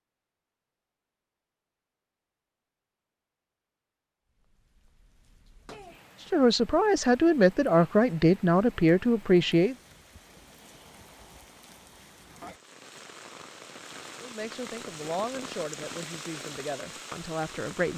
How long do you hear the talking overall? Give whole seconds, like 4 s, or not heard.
7 s.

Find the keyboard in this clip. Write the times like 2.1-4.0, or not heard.
not heard.